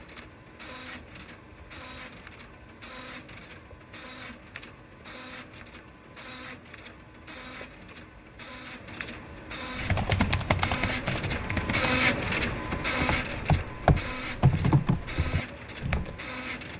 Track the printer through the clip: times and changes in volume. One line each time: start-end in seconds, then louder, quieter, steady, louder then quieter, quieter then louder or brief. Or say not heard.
0.0-16.7 louder then quieter.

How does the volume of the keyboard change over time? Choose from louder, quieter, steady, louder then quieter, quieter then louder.
quieter then louder.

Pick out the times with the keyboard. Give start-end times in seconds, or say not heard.
9.8-16.1.